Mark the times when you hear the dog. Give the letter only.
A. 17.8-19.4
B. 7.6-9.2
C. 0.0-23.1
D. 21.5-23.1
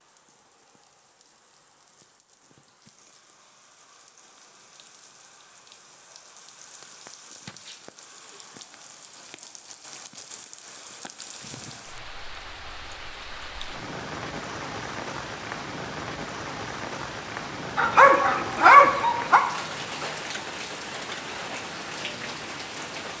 A.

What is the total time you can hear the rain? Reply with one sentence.
The rain can be heard for 23 seconds in total.